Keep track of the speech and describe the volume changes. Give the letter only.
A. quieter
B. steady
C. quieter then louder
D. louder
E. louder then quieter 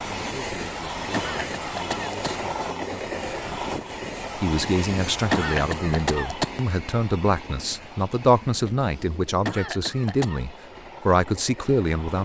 D.